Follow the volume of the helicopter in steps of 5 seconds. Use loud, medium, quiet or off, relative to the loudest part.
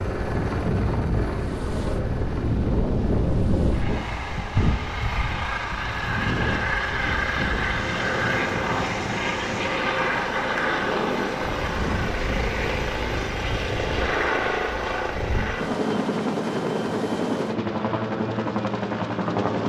medium, loud, loud, loud.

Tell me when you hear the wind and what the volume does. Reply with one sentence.
You can hear the wind from 0.0 to 15.6 s, getting quieter.